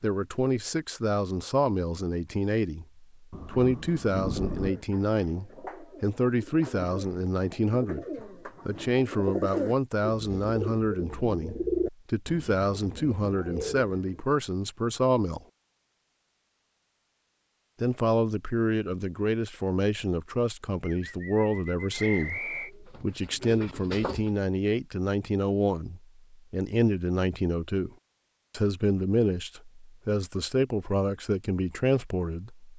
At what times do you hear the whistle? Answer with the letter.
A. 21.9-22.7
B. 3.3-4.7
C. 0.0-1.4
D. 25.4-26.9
A.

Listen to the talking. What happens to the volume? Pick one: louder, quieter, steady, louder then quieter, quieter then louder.
steady.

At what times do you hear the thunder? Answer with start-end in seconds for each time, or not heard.
3.3-4.7.